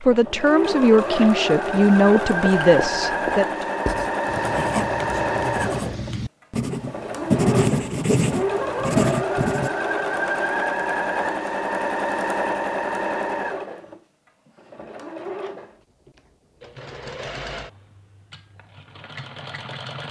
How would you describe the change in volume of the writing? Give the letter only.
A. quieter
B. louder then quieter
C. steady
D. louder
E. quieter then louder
D.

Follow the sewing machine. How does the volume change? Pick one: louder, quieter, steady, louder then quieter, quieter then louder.
quieter.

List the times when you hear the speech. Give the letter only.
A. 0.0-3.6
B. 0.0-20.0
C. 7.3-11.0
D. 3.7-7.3
A.